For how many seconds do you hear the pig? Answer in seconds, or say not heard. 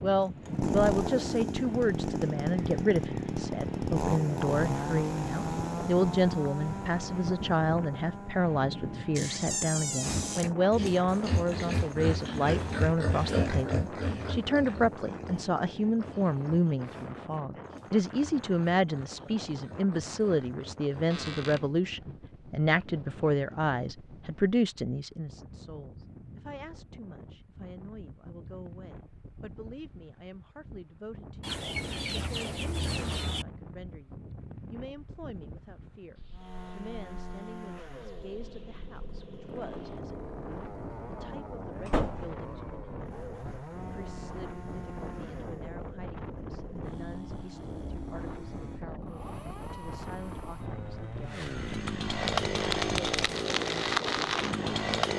11 s.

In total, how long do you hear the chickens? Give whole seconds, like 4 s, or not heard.
2 s.